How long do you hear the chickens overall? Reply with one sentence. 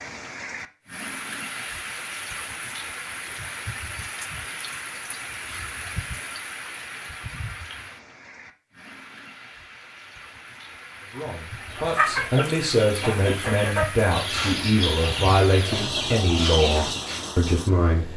The chickens can be heard for 6 seconds in total.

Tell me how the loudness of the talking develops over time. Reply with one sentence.
The loudness of the talking stays about the same.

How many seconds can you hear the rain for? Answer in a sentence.
The rain can be heard for 18 seconds in total.